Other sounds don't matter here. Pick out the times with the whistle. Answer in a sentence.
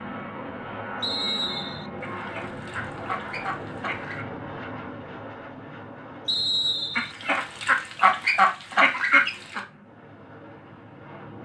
You can hear the whistle from 1.0 to 1.9 s and from 6.2 to 7.2 s.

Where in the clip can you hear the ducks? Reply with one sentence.
The ducks can be heard from 2.0 to 4.2 s and from 7.0 to 9.6 s.